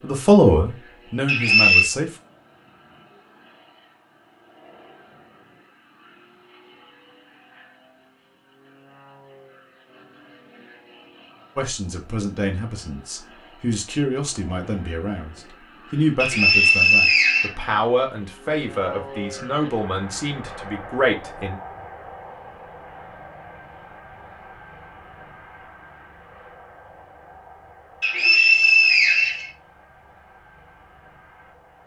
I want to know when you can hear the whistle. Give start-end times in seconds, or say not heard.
1.2-1.9, 16.2-17.5, 28.0-29.4.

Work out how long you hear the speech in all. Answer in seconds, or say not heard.
12 s.